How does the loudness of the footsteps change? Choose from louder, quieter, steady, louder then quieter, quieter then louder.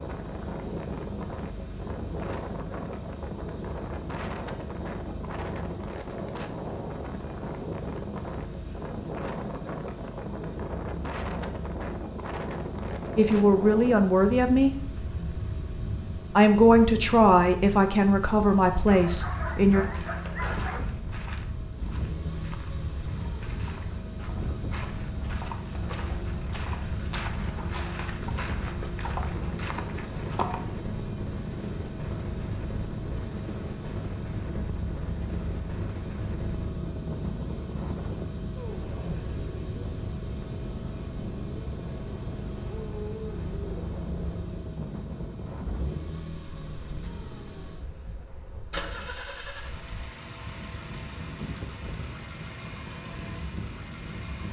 louder.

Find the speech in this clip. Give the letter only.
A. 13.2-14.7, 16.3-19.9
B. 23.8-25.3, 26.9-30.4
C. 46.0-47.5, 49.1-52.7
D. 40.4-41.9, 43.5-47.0
A.